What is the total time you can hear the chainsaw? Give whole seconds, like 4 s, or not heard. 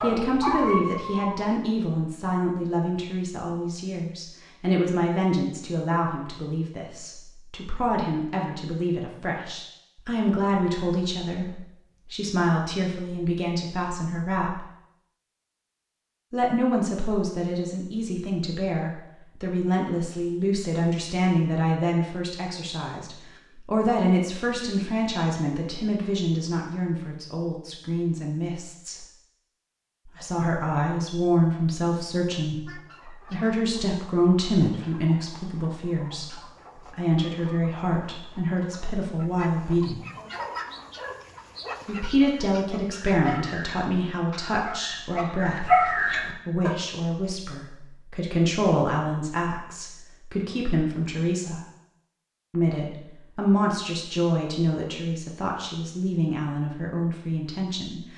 not heard.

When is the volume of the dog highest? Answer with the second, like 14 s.
46 s.